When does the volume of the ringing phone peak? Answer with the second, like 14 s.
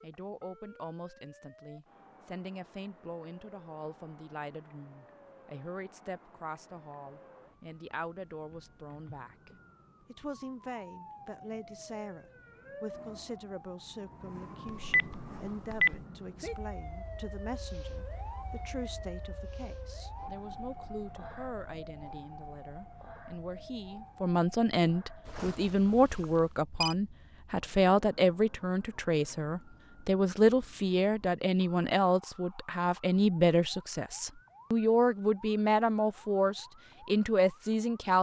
16 s.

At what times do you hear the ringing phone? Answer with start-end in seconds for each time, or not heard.
14.7-16.0, 25.2-26.9.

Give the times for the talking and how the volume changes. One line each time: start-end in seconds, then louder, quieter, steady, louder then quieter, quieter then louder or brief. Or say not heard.
0.0-38.1 louder.